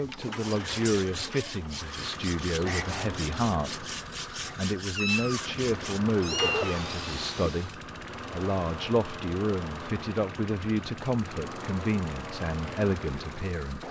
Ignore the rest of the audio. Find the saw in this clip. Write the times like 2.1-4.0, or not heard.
0.2-7.8.